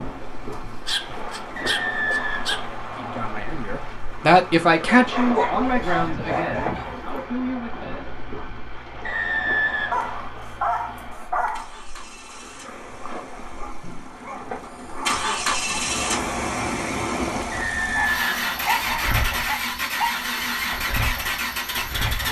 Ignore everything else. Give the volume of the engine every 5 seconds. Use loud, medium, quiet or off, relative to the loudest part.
quiet, quiet, quiet, loud, loud.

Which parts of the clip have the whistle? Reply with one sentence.
The whistle can be heard from 1.6 to 3.1 s, from 9.0 to 10.3 s and from 17.5 to 19.1 s.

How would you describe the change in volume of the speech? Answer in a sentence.
The loudness of the speech goes down.